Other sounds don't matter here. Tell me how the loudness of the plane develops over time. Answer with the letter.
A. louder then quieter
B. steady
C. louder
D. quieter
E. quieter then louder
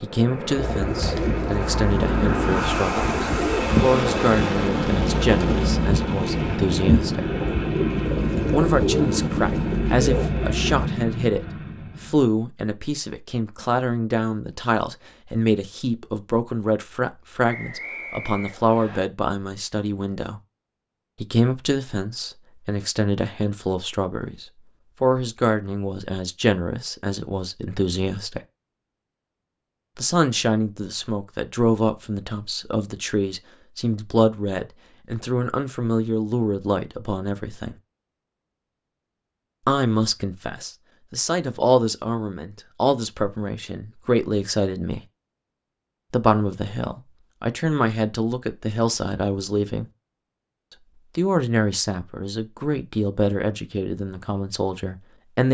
B.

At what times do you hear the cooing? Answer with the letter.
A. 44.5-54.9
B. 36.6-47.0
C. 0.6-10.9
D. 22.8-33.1
C.